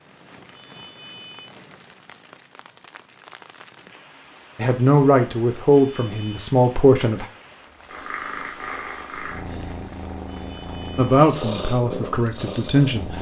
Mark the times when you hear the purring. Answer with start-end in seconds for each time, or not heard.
7.8-13.1.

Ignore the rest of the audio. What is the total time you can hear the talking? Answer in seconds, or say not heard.
5 s.